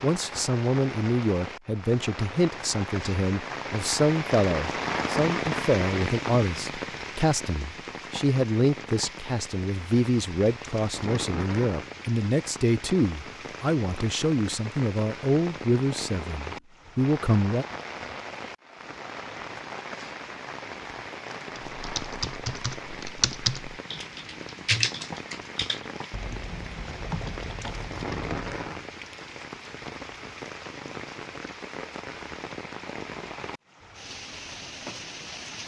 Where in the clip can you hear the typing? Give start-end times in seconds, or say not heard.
21.6-28.8.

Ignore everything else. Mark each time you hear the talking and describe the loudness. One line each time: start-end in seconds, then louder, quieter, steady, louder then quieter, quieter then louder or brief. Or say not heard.
0.0-17.6 steady.